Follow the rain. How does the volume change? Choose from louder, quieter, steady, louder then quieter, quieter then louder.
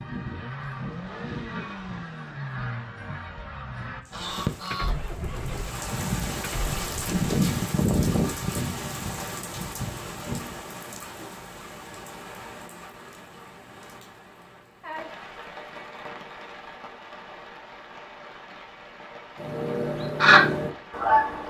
quieter.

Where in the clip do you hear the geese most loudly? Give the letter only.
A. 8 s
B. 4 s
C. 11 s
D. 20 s
D.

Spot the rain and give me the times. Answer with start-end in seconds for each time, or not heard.
4.0-21.4.